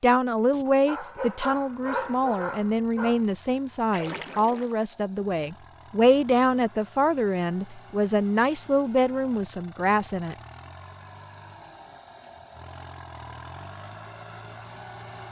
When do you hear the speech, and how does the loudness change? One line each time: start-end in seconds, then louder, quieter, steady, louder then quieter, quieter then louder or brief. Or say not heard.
0.0-10.3 steady.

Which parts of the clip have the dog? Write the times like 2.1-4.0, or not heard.
0.5-3.2.